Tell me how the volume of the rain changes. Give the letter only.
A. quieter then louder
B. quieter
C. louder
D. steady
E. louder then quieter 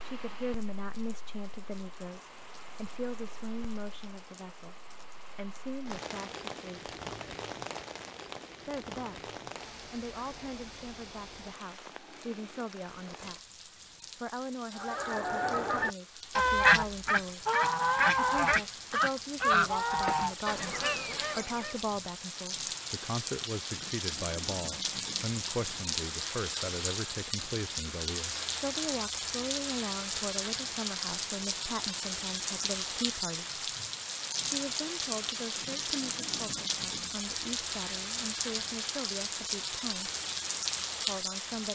C.